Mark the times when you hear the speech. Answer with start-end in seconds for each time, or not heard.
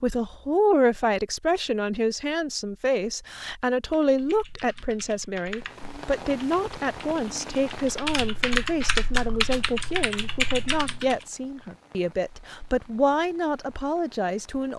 0.0-14.7.